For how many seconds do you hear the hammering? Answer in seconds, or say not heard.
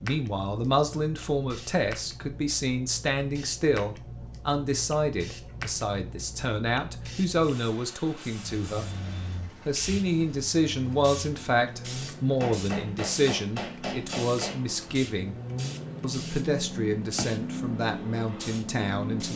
2 s.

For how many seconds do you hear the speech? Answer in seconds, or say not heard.
18 s.